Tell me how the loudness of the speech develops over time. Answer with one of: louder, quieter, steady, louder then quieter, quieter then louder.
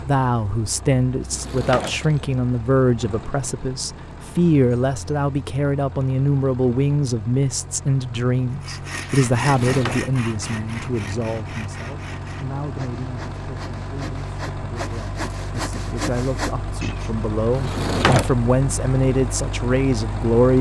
quieter then louder.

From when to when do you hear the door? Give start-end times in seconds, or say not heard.
1.2-2.4, 9.4-10.0, 17.5-18.3.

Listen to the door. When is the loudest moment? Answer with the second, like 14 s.
18 s.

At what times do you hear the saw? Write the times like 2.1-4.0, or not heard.
8.6-17.2.